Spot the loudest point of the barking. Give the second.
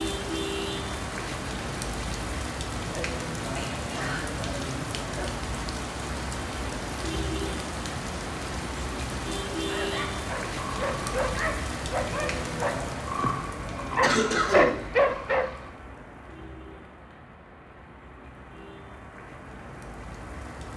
15 s.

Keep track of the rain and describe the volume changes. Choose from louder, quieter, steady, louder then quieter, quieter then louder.
quieter.